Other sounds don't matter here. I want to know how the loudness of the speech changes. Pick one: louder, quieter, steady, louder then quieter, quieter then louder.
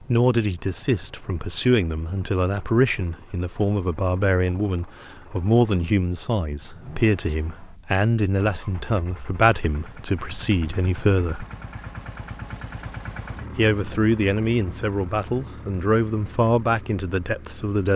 steady.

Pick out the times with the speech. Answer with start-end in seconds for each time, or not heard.
0.0-11.4, 13.6-17.9.